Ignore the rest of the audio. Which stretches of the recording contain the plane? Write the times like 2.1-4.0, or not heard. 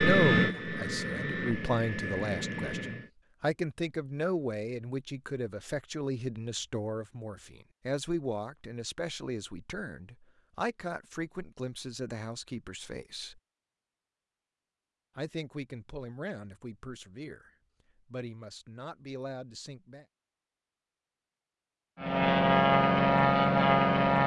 0.0-3.1, 21.9-24.2.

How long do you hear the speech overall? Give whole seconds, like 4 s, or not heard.
18 s.